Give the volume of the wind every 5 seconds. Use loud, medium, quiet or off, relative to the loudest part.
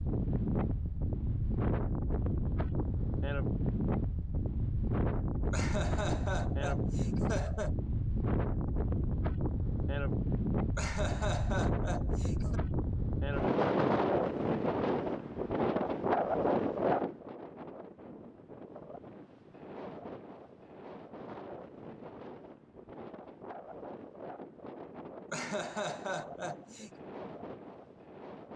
loud, loud, loud, loud, quiet, quiet.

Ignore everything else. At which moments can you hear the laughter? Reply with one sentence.
The laughter can be heard from 5.5 to 7.8 s, from 10.8 to 12.6 s and from 25.3 to 26.9 s.